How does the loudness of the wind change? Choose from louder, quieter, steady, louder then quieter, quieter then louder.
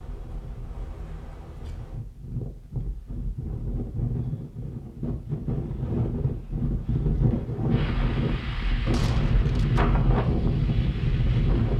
louder.